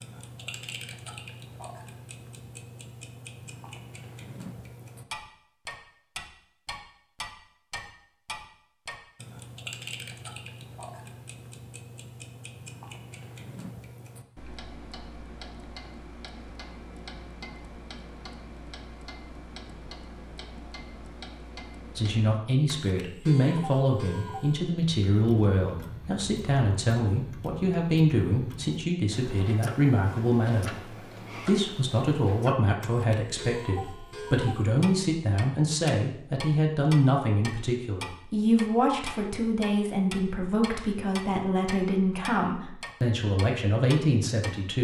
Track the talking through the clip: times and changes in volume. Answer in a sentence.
The talking can be heard from 21.9 to 44.7 s, at a steady volume.